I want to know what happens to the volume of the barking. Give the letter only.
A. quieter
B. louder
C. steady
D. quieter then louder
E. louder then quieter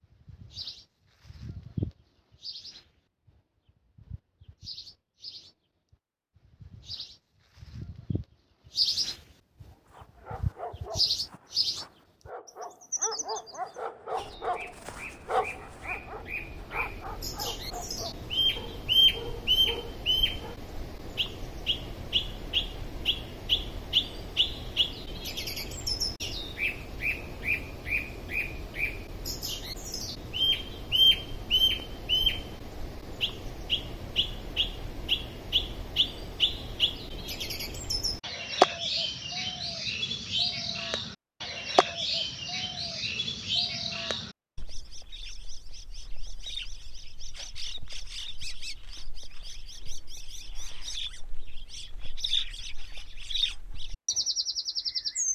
E.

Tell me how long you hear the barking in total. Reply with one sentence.
The barking can be heard for 11 seconds in total.